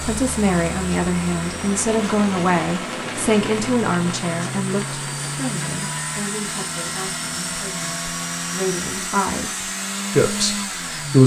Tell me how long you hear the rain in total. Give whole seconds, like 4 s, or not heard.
6 s.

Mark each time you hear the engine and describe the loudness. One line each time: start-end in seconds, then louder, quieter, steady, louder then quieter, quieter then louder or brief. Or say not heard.
0.0-11.2 louder.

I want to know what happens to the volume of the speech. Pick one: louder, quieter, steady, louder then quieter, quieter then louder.
quieter then louder.